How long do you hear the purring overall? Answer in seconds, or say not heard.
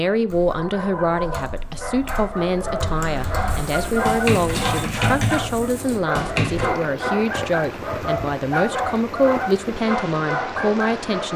not heard.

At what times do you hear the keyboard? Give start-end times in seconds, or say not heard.
0.2-6.7.